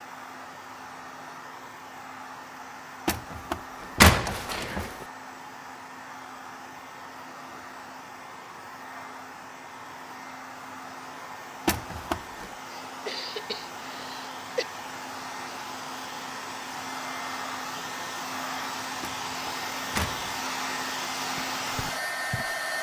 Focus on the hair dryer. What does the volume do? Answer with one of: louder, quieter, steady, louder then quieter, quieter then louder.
louder.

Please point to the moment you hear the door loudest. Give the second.
4 s.